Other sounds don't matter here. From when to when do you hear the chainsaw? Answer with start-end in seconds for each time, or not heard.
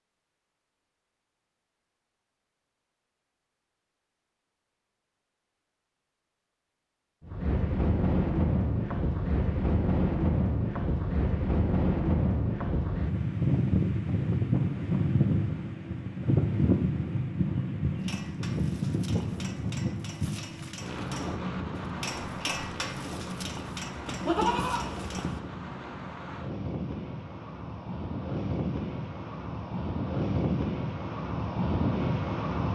not heard.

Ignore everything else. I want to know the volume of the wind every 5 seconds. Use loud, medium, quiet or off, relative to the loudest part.
off, loud, loud, loud, medium, medium, loud.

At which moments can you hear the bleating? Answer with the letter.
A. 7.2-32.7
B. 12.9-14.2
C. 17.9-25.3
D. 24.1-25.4
D.